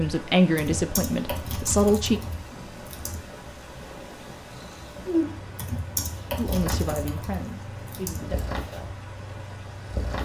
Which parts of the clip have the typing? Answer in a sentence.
The typing can be heard from 0.6 to 3.2 s and from 5.5 to 8.4 s.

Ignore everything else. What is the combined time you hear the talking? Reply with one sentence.
You can hear the talking for 4 seconds altogether.